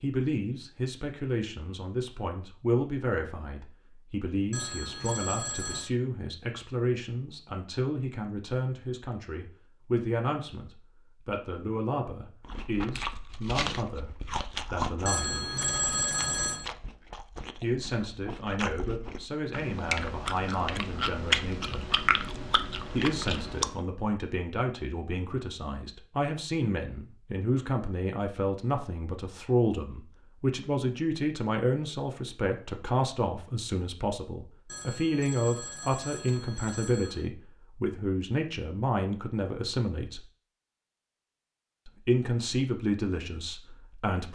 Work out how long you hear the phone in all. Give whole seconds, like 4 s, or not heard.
6 s.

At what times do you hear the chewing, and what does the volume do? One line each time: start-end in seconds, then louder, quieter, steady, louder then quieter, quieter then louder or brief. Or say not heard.
12.4-23.7 quieter then louder.